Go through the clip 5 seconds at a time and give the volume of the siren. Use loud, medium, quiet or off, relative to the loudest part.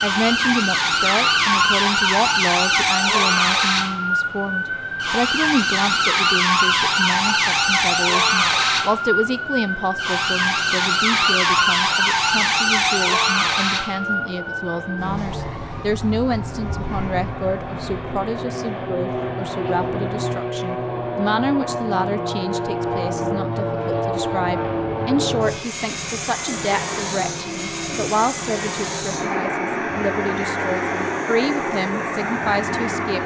loud, loud, loud, quiet, off, quiet, quiet.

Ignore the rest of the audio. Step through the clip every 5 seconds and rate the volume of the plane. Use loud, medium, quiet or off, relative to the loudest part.
quiet, quiet, quiet, medium, loud, loud, loud.